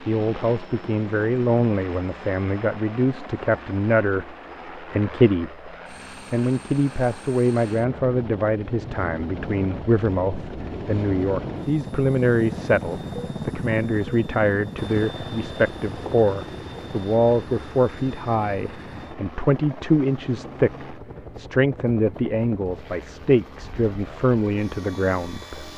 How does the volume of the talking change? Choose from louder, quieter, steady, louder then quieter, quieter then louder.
steady.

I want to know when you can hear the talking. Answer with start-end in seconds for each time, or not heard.
0.1-5.7, 6.3-25.7.